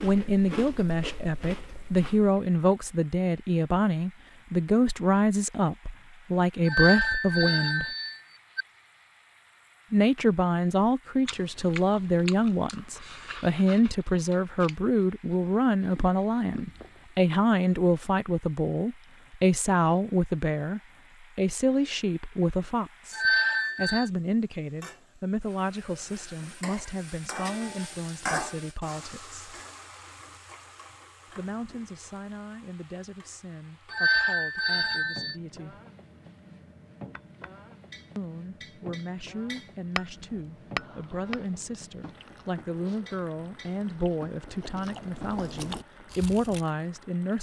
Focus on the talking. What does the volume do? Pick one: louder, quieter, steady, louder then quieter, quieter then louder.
quieter then louder.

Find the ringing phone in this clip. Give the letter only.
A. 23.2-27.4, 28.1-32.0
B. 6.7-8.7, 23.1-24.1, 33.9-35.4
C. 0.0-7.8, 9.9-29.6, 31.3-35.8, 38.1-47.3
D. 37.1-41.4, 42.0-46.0
B.